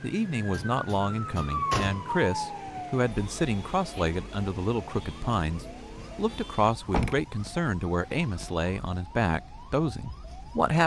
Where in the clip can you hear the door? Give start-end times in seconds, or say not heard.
0.5-2.0, 6.8-8.4.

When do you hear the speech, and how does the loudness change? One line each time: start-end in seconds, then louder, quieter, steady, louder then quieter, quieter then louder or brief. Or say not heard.
0.0-10.8 steady.